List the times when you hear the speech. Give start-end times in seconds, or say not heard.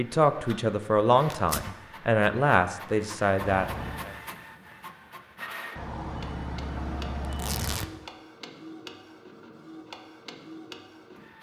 0.0-4.1.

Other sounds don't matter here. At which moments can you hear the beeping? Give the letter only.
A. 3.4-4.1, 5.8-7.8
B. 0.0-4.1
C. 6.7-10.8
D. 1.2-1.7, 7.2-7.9
A.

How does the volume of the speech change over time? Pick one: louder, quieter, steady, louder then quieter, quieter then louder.
steady.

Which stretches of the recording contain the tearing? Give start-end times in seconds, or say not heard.
1.2-1.7, 7.2-7.9.